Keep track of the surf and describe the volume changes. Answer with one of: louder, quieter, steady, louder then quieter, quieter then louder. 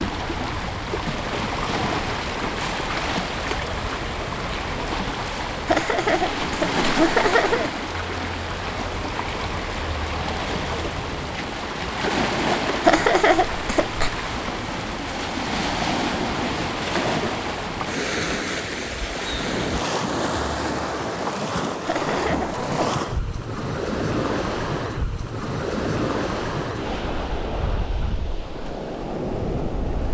steady.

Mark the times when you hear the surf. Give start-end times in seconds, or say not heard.
0.0-30.1.